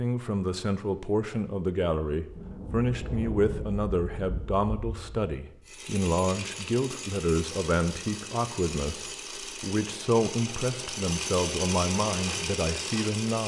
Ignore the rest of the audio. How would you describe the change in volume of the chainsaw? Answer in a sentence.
The loudness of the chainsaw goes up.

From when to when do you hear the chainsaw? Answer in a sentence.
You can hear the chainsaw from 5.7 to 13.4 s.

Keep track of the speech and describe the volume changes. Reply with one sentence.
The volume of the speech stays about the same.